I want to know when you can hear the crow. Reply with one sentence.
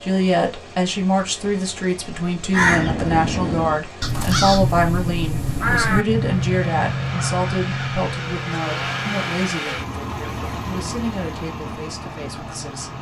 You can hear the crow from 2.5 to 9.7 s.